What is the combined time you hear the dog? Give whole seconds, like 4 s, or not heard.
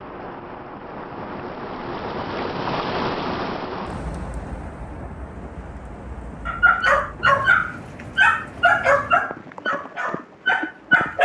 5 s.